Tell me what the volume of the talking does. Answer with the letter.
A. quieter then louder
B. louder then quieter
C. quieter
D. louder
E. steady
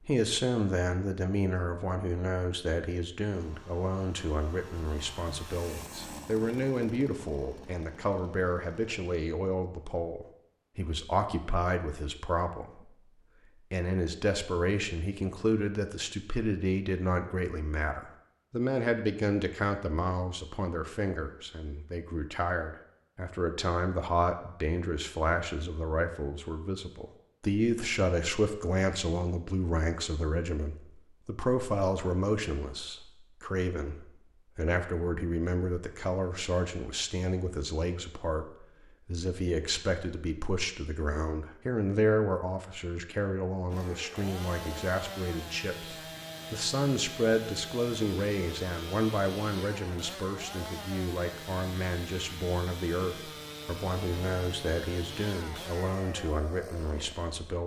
E.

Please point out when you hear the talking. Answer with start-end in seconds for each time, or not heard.
0.0-13.0, 13.7-57.6.